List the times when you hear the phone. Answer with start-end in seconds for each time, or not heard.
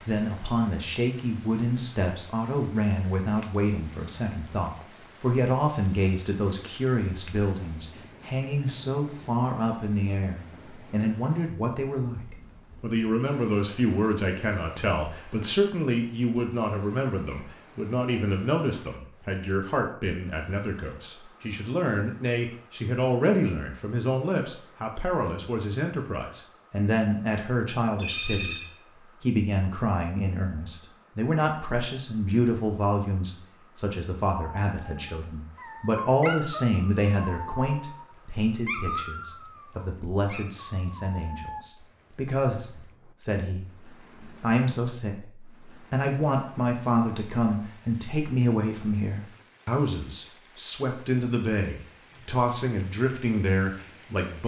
27.9-28.8.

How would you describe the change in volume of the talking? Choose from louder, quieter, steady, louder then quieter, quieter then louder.
steady.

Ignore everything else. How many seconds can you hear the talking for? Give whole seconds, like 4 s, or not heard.
54 s.